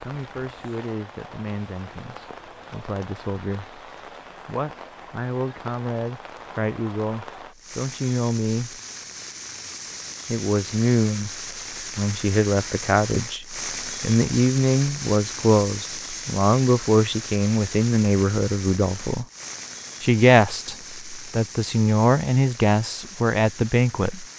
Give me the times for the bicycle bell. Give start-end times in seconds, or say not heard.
not heard.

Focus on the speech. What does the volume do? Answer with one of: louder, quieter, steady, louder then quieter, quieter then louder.
louder.